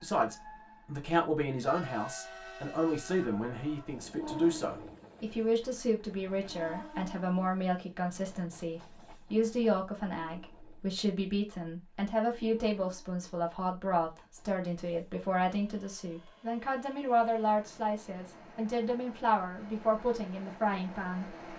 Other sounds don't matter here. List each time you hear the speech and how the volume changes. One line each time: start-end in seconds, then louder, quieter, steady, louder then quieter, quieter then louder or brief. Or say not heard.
0.0-21.4 steady.